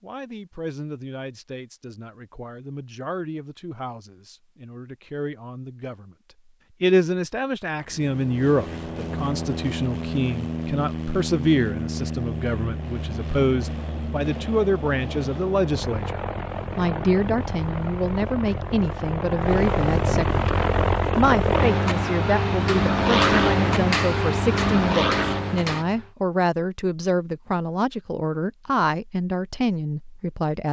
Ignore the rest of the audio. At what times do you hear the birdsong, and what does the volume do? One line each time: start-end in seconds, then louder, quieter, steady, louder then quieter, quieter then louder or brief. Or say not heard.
not heard.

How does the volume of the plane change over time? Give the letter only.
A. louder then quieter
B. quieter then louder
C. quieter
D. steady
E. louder
E.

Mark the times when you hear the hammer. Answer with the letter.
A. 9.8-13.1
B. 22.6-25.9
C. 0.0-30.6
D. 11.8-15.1
B.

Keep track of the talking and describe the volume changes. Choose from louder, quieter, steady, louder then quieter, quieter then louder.
louder.